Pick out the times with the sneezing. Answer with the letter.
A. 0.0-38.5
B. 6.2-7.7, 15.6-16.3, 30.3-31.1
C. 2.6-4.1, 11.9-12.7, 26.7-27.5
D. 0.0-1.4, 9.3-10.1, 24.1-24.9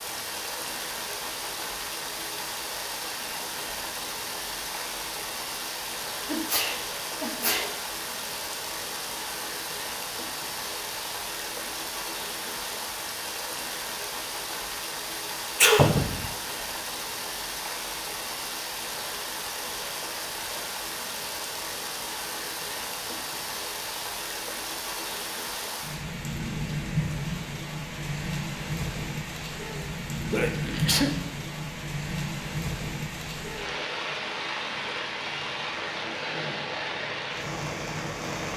B.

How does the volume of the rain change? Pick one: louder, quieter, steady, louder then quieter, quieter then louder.
steady.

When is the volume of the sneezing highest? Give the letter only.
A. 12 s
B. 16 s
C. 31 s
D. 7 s
B.